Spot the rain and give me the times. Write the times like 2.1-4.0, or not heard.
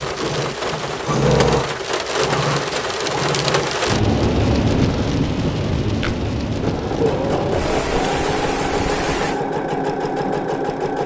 0.0-9.4.